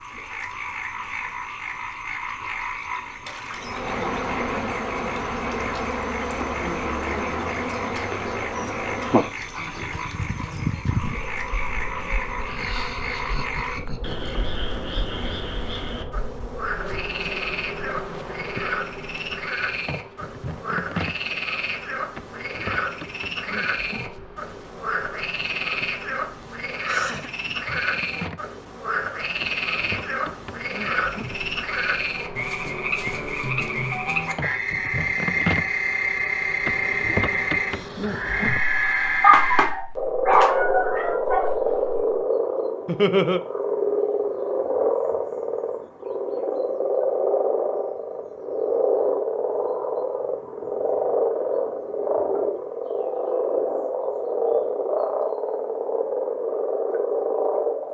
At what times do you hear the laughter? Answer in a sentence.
You can hear the laughter from 12.4 to 14.4 s, from 26.5 to 27.3 s and from 42.9 to 43.4 s.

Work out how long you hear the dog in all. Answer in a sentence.
You can hear the dog for 2 seconds altogether.